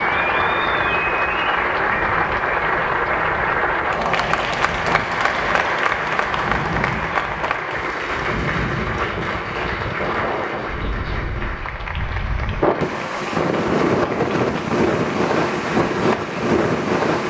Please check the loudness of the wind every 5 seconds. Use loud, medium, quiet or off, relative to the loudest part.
quiet, medium, loud, loud.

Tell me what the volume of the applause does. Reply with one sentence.
The volume of the applause goes down.